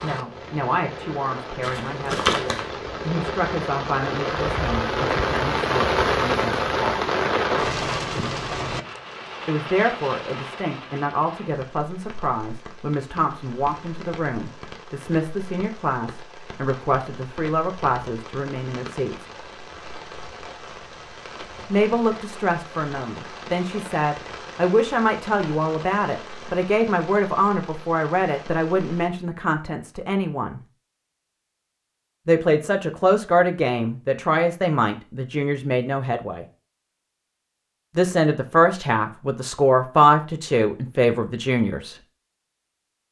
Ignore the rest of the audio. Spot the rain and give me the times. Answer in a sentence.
You can hear the rain from 0.0 to 29.1 s.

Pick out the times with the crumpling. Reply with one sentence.
You can hear the crumpling from 1.6 to 2.6 s.